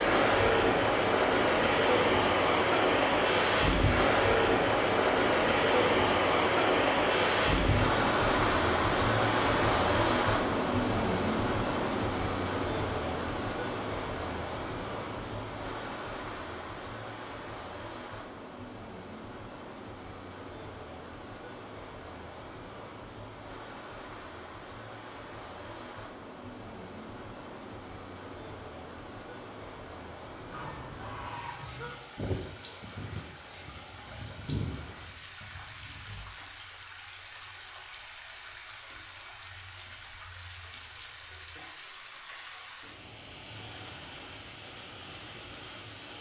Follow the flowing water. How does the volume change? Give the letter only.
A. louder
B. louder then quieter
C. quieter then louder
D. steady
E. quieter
E.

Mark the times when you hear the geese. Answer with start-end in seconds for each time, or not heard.
30.5-36.2.